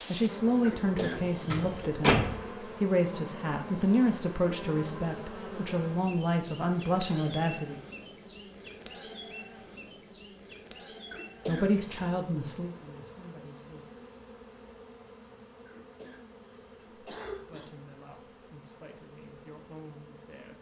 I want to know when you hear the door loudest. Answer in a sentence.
The volume of the door peaks at 2 seconds.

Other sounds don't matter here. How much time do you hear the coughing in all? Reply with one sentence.
The coughing can be heard for 4 seconds in total.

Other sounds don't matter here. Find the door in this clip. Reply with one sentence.
You can hear the door from 1.0 to 2.5 s.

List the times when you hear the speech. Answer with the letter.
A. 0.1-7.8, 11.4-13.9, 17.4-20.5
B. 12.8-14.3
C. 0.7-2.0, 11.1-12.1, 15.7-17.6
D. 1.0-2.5
A.